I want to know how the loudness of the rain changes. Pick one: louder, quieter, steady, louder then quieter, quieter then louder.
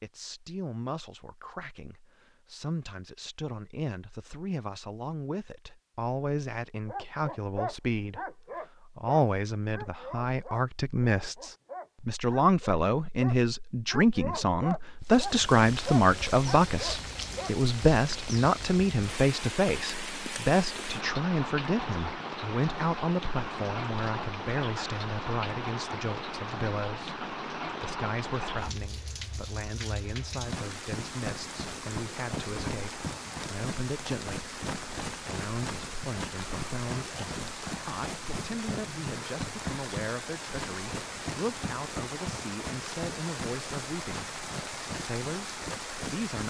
steady.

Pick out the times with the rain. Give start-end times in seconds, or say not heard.
15.0-46.4.